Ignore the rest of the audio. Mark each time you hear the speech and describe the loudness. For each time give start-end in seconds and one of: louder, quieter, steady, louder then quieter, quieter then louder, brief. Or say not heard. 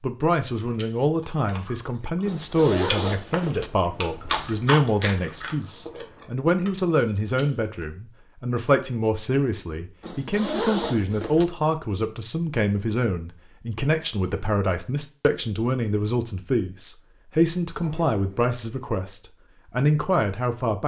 0.0-20.8 steady.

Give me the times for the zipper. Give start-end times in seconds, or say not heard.
2.2-3.7, 10.0-11.4, 17.8-18.4.